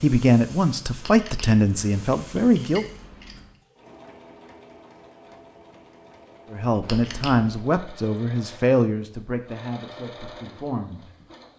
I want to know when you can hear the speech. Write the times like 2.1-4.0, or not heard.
0.0-2.9, 6.5-11.1.